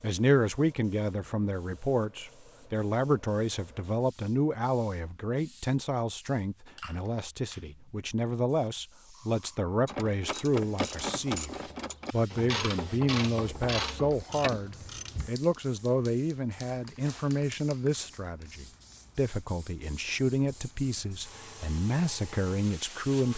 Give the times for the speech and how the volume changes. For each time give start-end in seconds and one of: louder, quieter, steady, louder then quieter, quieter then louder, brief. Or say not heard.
0.0-23.3 steady.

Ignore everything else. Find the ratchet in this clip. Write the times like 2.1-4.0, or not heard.
9.8-15.3.